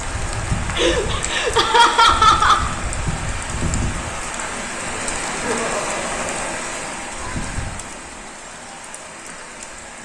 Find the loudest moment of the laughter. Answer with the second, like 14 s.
2 s.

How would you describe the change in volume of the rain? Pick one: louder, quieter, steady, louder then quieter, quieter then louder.
quieter.